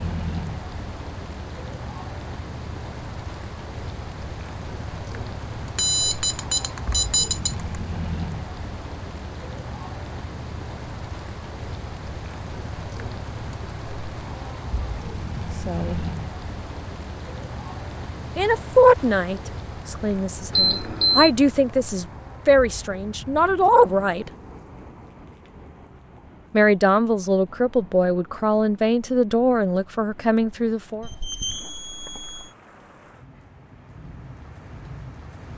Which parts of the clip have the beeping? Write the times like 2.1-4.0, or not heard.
5.8-7.8, 20.5-21.3, 31.0-32.5.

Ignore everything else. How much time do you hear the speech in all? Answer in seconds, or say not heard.
11 s.